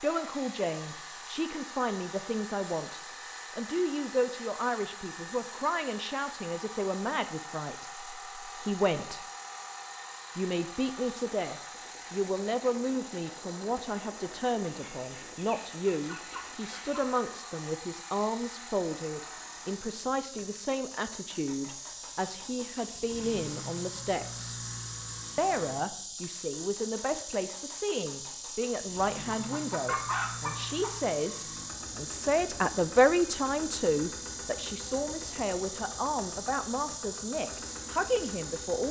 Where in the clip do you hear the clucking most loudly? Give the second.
30 s.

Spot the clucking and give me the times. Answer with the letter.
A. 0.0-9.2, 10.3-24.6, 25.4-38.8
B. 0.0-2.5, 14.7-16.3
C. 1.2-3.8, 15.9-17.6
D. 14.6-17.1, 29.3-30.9
D.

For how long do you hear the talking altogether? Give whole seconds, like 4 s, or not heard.
37 s.